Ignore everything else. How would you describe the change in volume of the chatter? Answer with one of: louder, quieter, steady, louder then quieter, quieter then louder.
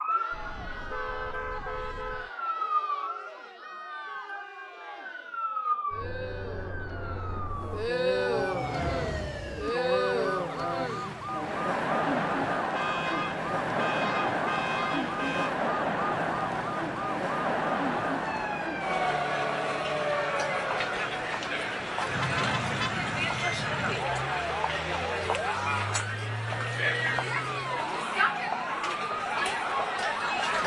louder.